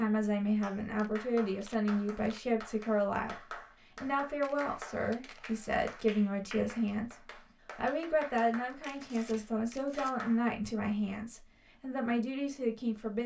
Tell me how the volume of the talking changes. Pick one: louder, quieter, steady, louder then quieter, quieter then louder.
steady.